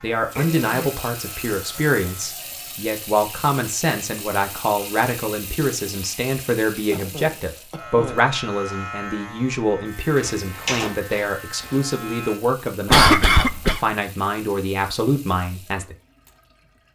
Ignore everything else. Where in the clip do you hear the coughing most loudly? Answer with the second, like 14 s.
13 s.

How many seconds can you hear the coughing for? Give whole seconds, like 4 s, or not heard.
3 s.